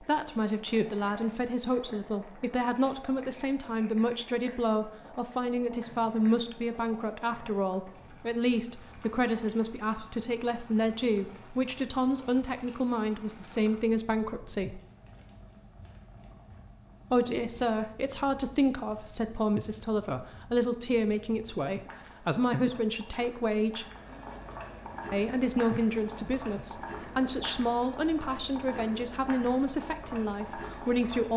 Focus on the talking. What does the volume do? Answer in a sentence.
The loudness of the talking stays about the same.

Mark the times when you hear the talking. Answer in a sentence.
The talking can be heard from 0.0 to 14.8 s, from 17.1 to 23.9 s and from 25.1 to 31.3 s.